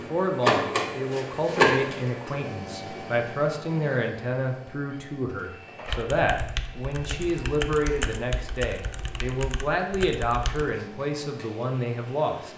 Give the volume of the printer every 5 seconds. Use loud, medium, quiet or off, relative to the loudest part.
loud, quiet, quiet.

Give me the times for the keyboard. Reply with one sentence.
The keyboard can be heard from 5.8 to 10.7 s.